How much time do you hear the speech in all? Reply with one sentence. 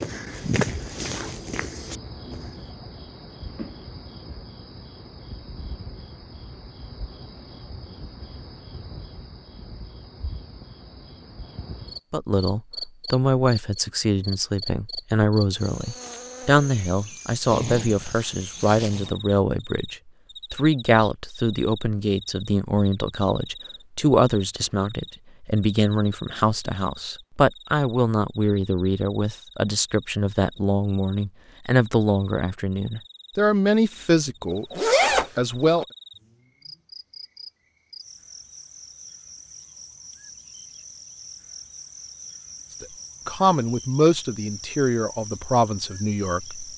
The speech can be heard for 27 seconds in total.